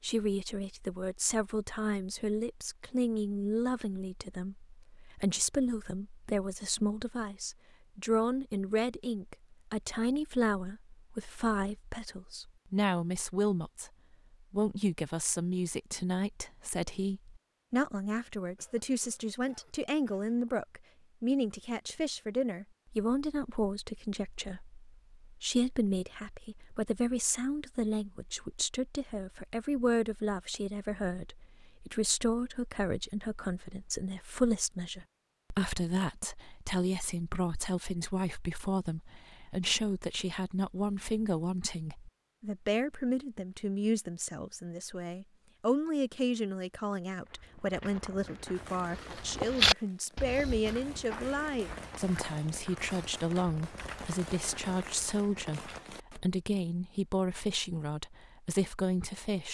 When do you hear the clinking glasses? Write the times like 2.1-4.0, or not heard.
not heard.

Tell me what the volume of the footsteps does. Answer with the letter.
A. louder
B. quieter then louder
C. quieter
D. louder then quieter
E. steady
D.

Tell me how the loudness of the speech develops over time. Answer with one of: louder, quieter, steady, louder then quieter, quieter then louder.
steady.